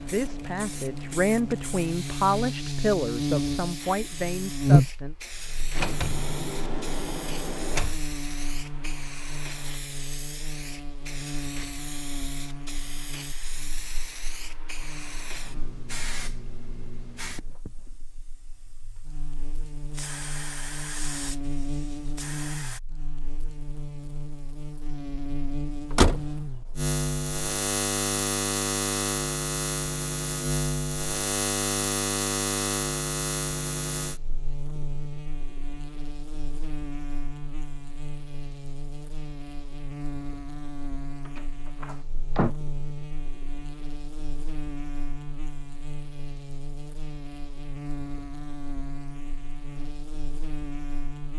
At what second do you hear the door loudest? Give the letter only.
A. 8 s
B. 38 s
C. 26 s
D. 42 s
C.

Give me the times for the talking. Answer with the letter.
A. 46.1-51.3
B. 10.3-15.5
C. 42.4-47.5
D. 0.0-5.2
D.